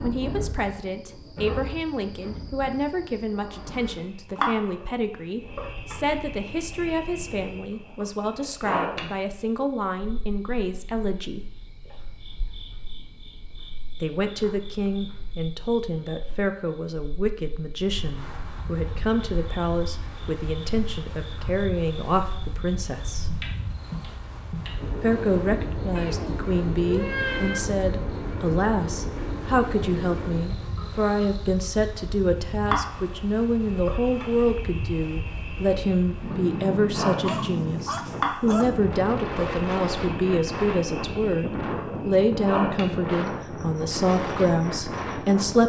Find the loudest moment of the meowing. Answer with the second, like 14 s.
27 s.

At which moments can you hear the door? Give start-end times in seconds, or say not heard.
not heard.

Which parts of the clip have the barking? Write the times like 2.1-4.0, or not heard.
37.2-38.7.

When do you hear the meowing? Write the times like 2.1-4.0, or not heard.
25.9-27.6.